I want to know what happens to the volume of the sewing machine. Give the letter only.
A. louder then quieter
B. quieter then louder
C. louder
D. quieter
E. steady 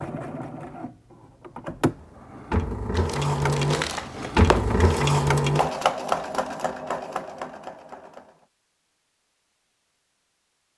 A.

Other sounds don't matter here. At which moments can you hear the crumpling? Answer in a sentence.
The crumpling can be heard from 3.0 to 4.9 s.